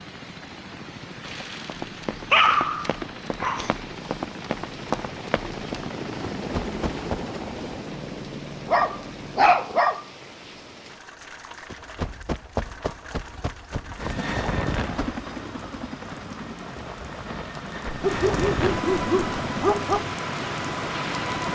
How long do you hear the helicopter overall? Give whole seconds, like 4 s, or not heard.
17 s.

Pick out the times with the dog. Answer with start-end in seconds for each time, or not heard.
1.2-3.7, 8.7-10.1, 17.9-20.1.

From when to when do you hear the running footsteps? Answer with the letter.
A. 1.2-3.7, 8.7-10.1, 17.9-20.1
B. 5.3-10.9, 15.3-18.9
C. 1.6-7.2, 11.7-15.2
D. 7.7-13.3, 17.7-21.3
C.